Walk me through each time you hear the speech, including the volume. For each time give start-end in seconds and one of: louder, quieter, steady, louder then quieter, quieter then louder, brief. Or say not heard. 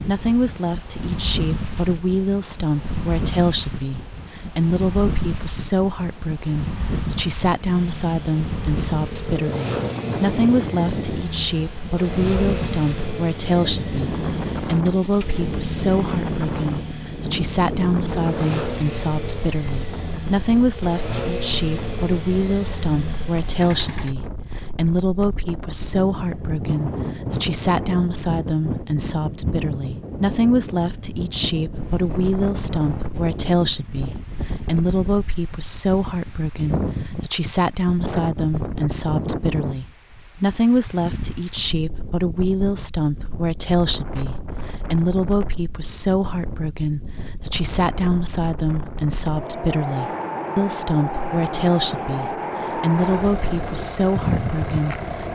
0.0-55.3 steady.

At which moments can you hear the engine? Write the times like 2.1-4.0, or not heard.
7.7-24.1, 52.9-55.3.